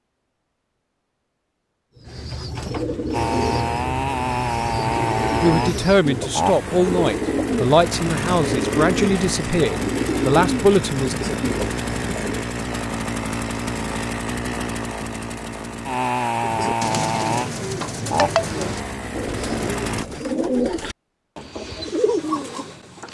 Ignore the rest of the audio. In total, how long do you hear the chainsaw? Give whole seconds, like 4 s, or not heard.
17 s.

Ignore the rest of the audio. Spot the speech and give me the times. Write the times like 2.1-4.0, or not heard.
5.4-11.2.